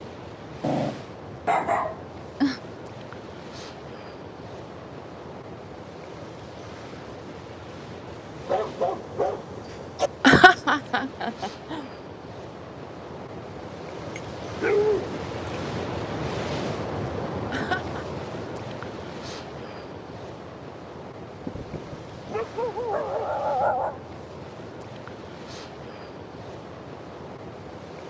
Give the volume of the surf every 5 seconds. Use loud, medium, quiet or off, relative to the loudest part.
medium, medium, medium, loud, medium, medium.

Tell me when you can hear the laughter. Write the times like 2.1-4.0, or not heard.
10.2-11.8, 17.5-18.1.